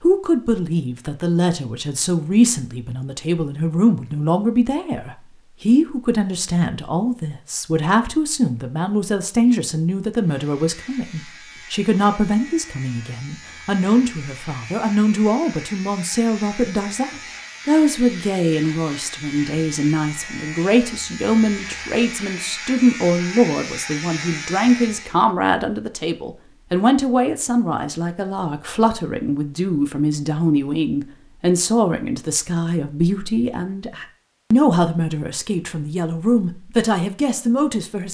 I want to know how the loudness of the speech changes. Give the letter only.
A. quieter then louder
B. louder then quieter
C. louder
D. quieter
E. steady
E.